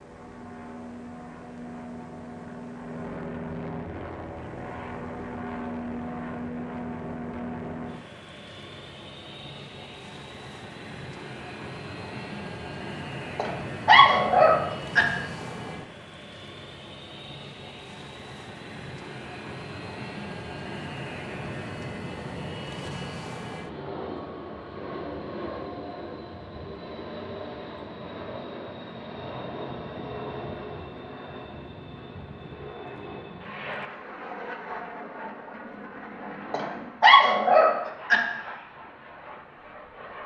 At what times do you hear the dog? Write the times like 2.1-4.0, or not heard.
13.3-15.1, 36.5-38.2.